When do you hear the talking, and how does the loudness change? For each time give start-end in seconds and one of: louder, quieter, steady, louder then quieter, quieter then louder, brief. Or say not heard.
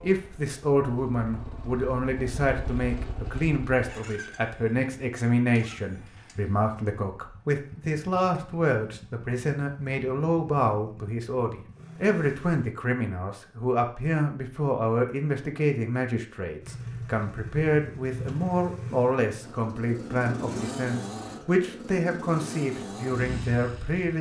0.0-24.1 steady.